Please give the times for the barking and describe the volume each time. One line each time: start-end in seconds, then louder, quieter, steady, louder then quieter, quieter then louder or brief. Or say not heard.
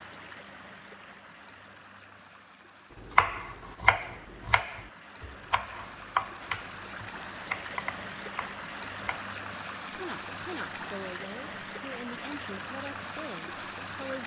not heard.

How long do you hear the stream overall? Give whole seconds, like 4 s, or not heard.
14 s.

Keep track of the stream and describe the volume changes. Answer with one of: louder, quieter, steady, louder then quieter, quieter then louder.
louder.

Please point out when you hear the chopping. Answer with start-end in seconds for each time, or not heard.
3.1-9.3.